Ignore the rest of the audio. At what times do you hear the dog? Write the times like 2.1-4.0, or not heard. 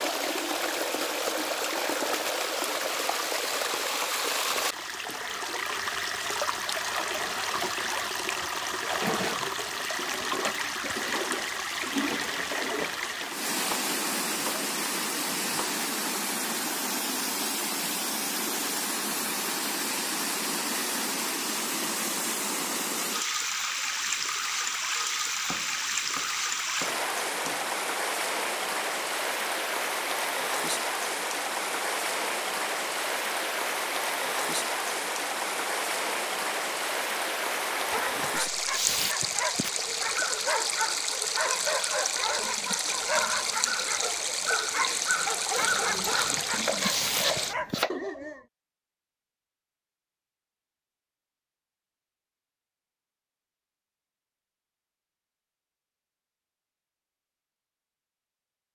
37.6-48.5.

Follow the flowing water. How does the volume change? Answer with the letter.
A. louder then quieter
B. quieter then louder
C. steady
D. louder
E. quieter
C.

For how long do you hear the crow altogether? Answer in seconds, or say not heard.
7 s.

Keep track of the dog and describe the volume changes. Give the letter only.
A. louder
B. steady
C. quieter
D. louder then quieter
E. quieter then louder
B.